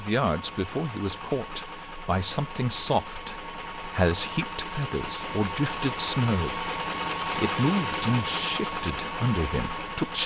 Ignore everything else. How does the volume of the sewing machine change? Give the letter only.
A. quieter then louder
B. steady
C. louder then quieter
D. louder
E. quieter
D.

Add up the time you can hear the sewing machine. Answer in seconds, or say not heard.
10 s.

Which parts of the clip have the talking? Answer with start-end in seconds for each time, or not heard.
0.0-10.2.